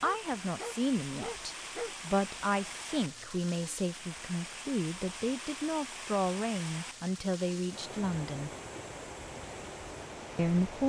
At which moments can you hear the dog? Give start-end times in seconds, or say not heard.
0.0-1.9.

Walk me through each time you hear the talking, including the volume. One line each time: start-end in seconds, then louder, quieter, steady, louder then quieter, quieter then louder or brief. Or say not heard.
0.0-8.5 steady
10.3-10.8 brief.